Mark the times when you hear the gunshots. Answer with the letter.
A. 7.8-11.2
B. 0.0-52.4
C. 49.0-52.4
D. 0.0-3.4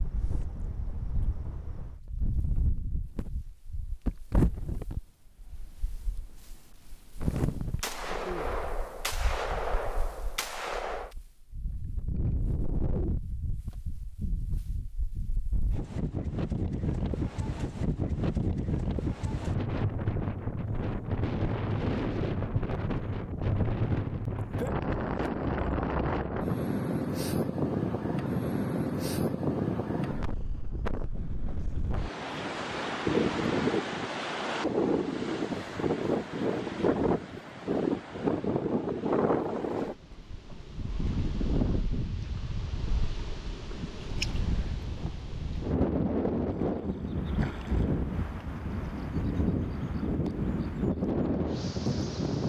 A.